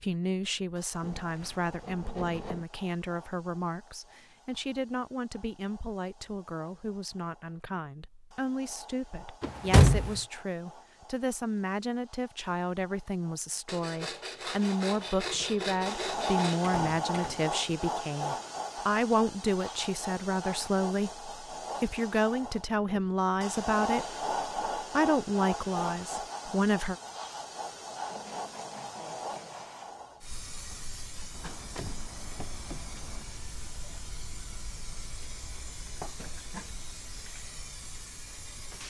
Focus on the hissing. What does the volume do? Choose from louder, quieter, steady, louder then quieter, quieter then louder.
louder then quieter.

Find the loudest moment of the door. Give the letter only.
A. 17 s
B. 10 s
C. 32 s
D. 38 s
B.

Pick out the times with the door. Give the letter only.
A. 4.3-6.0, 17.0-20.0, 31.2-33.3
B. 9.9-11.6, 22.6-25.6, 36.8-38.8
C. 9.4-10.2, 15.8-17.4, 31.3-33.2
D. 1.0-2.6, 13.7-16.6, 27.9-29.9
C.